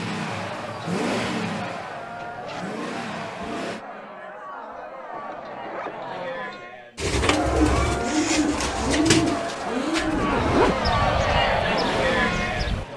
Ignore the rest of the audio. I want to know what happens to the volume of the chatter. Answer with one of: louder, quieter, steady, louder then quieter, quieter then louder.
louder.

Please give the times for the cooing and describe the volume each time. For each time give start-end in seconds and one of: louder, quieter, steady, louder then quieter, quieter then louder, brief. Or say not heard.
7.0-12.8 quieter.